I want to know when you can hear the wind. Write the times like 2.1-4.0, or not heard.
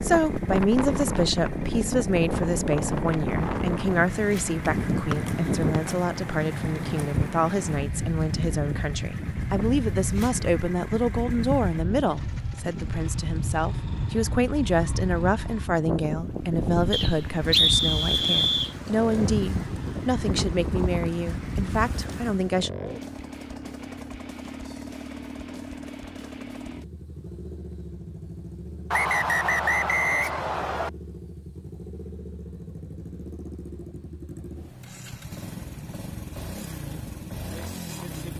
0.0-22.6.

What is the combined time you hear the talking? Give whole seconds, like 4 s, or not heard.
23 s.